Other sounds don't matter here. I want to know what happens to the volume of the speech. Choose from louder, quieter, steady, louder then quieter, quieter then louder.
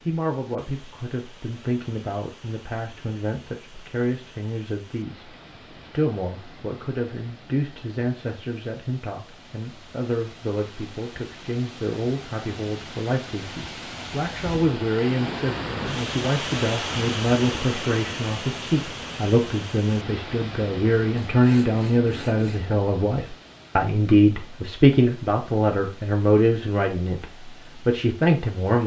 louder.